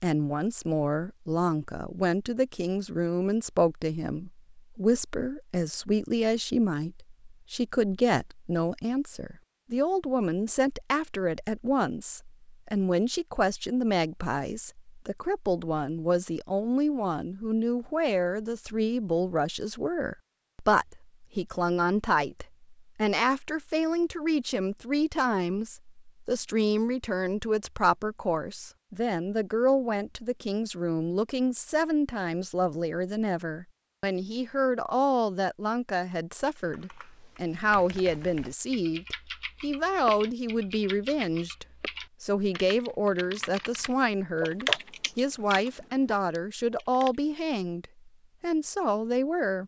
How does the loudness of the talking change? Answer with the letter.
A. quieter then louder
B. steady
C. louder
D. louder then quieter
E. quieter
B.